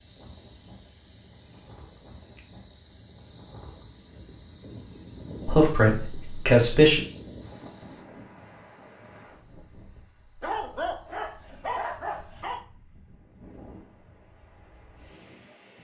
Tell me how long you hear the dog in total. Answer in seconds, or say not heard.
2 s.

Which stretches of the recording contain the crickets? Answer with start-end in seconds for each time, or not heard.
0.0-12.6.